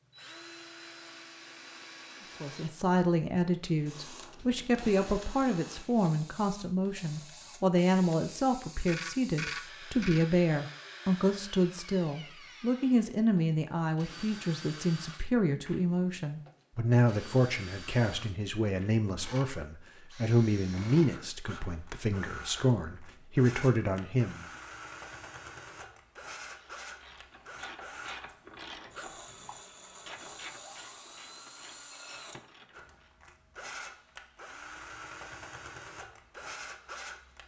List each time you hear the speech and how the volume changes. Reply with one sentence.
The speech can be heard from 2.4 to 24.4 s, at a steady volume.